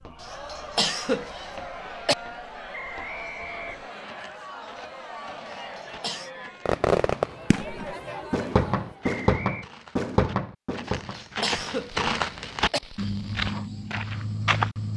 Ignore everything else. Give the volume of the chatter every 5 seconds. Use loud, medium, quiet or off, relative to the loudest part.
loud, loud, off.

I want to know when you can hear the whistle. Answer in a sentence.
You can hear the whistle from 2.7 to 4.2 s and from 9.0 to 9.7 s.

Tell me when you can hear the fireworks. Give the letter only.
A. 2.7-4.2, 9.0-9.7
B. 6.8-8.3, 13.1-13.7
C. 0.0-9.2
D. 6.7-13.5
D.